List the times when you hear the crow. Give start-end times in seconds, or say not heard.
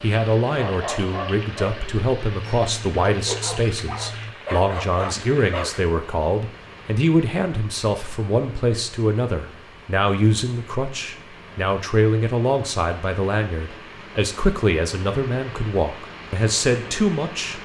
not heard.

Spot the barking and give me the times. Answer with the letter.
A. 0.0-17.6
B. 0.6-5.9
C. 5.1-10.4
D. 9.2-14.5
B.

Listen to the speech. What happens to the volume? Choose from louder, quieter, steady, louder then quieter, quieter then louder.
steady.